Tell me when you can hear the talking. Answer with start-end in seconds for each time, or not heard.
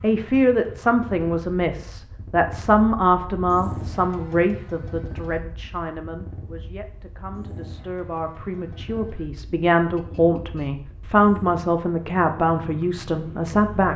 0.0-13.9.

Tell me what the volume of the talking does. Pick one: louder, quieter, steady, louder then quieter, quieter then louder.
quieter then louder.